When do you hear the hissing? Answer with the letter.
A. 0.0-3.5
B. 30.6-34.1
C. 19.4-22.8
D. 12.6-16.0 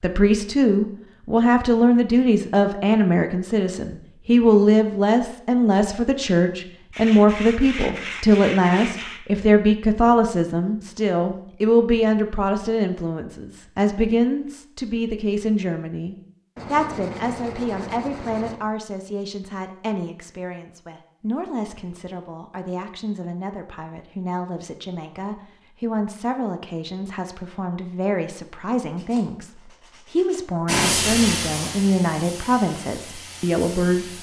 B.